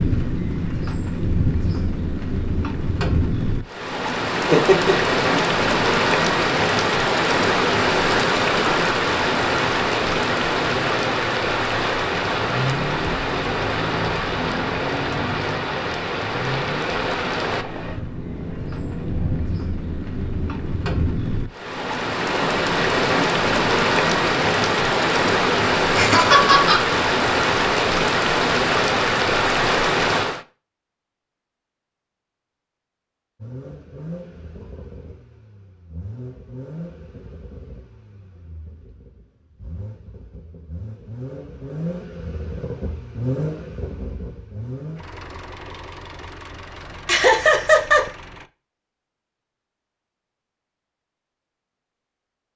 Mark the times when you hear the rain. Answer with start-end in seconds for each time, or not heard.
0.0-30.4.